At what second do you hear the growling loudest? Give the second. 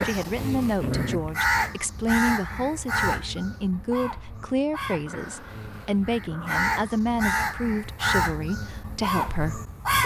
1 s.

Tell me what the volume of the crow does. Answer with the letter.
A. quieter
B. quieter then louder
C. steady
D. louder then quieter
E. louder
B.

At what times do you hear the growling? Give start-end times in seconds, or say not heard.
0.8-1.5, 5.0-6.7.